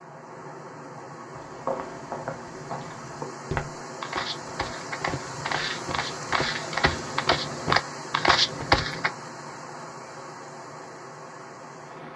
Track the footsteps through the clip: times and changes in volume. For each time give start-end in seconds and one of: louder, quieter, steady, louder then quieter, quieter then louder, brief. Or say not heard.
1.3-9.1 louder.